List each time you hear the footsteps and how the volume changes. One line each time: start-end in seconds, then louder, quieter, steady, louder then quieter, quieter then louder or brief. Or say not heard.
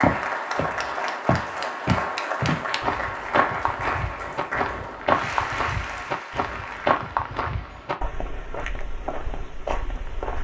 0.0-10.3 quieter.